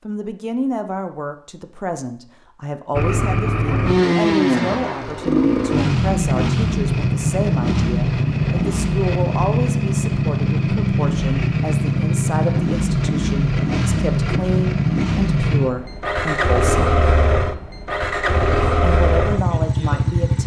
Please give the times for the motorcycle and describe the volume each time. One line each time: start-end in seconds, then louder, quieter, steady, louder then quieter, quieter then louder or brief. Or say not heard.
2.9-20.4 steady.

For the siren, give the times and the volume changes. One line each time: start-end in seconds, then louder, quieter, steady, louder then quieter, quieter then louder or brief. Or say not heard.
not heard.